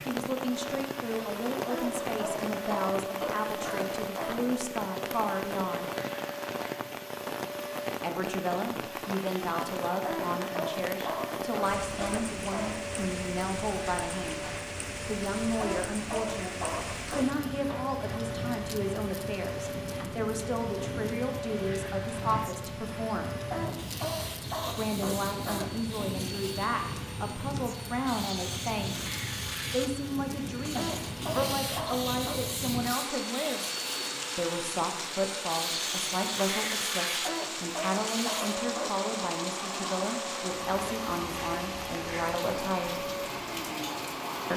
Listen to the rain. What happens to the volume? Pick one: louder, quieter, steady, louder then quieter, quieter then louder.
steady.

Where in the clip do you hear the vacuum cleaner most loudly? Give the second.
37 s.